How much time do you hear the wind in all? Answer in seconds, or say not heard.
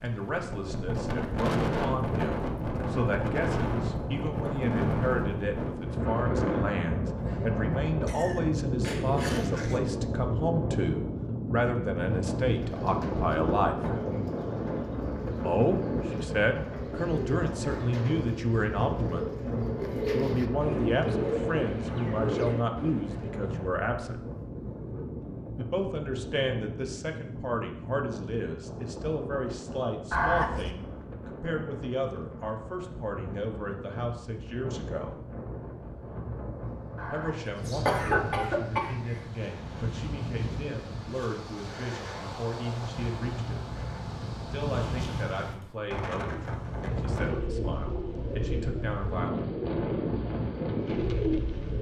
52 s.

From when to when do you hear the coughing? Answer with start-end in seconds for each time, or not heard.
8.1-9.8, 30.1-30.8, 37.0-39.2.